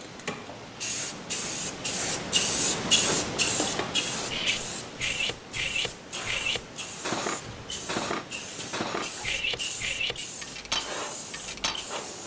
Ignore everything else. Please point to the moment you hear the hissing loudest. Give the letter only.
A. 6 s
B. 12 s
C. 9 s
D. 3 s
D.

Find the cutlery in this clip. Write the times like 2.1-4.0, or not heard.
4.3-11.8.